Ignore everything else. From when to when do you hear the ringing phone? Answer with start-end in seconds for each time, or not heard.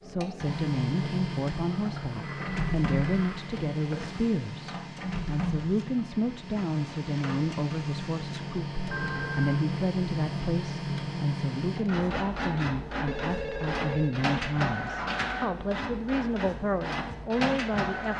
1.6-4.2, 8.8-9.7, 13.0-14.2.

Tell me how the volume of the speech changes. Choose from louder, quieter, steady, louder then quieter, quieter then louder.
steady.